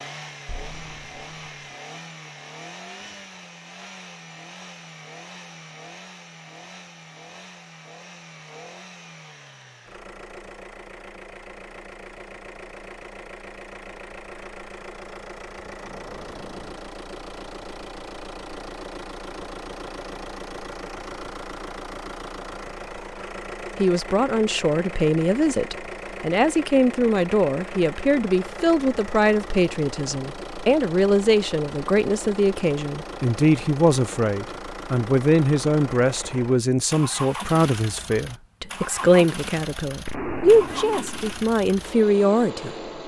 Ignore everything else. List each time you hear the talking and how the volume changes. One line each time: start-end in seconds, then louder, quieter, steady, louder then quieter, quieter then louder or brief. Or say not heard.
23.8-42.8 steady.